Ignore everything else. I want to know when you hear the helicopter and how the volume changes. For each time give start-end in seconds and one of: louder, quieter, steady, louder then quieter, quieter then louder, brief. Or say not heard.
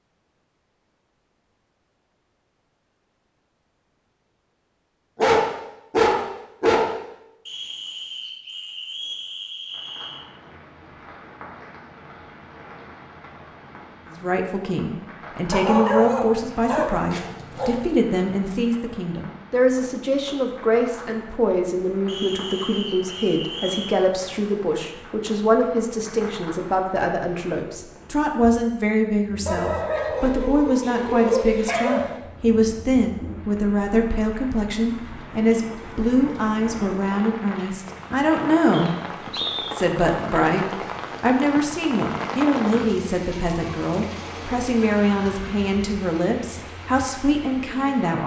not heard.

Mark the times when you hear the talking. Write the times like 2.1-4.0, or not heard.
14.1-39.0, 39.7-48.2.